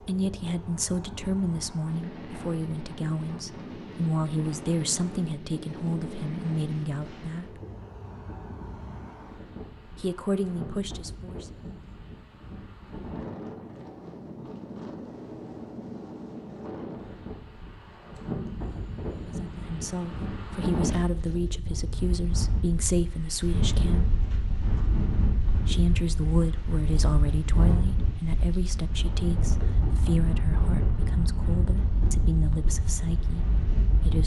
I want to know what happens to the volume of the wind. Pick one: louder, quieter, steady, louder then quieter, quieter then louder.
louder.